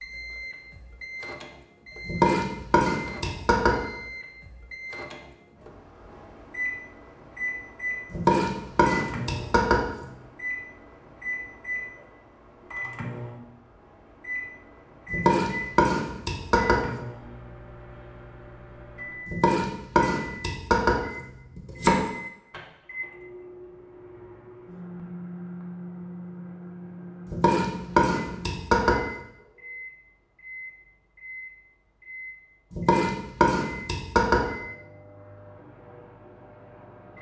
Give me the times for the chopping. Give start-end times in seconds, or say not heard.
2.0-3.8, 8.1-10.1, 15.1-16.9, 19.2-22.0, 27.2-29.0, 32.7-34.5.